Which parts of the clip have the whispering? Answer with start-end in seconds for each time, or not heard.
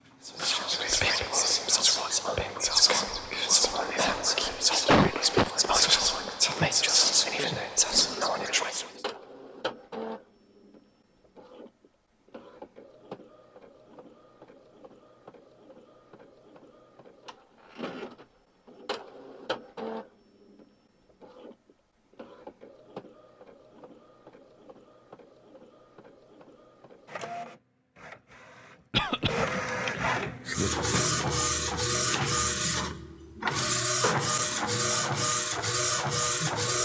0.2-8.9.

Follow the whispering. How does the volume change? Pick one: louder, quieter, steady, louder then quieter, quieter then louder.
steady.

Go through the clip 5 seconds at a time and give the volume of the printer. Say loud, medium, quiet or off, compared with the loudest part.
quiet, quiet, quiet, quiet, quiet, medium, loud, loud.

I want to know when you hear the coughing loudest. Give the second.
5 s.